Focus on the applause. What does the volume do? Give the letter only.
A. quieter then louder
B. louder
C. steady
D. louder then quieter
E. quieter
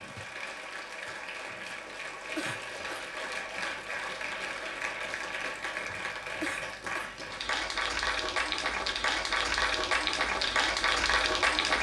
B.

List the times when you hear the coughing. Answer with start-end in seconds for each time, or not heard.
2.4-3.1, 6.4-7.2.